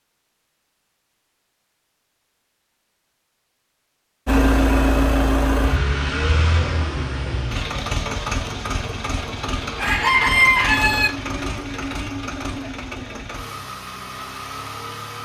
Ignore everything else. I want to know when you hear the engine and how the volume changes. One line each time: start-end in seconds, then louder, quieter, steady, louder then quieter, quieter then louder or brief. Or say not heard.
4.2-15.2 quieter.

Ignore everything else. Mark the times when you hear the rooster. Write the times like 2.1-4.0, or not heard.
9.8-11.1.